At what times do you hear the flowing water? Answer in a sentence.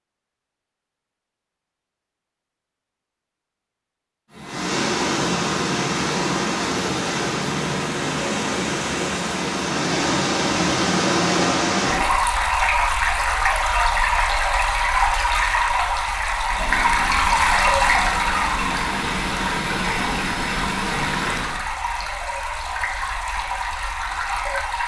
You can hear the flowing water from 4.5 to 24.8 s.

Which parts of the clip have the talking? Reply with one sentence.
You can't hear the talking here.